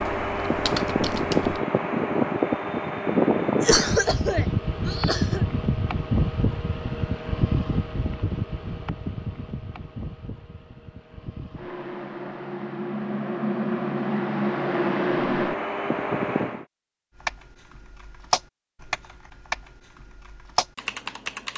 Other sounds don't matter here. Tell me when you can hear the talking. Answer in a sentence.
The talking can't be heard in this clip.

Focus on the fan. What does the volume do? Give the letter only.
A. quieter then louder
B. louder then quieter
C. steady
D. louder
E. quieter
A.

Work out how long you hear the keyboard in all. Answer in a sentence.
The keyboard can be heard for 6 seconds in total.